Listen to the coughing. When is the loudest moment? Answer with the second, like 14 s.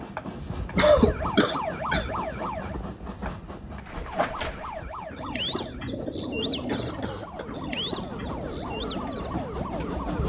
1 s.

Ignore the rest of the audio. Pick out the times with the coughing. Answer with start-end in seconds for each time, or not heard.
0.8-2.1, 6.7-7.5.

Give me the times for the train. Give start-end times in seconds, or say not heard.
0.0-10.2.